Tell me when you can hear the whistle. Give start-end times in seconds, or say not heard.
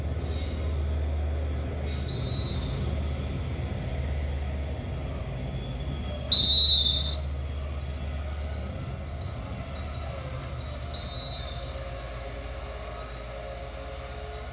2.0-2.8, 6.3-7.2, 10.9-11.8.